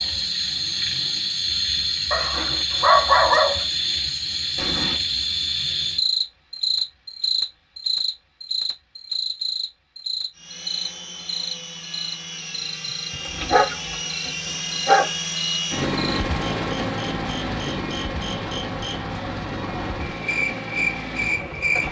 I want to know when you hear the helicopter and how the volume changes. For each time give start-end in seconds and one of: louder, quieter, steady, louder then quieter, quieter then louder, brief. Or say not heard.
10.3-21.8 louder then quieter.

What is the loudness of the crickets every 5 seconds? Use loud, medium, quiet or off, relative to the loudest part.
loud, loud, medium, medium, loud.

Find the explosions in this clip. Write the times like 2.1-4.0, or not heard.
4.5-5.0.